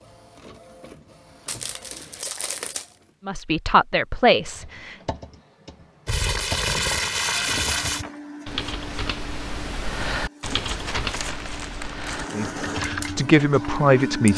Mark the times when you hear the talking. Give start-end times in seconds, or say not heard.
3.2-5.0, 12.3-14.3.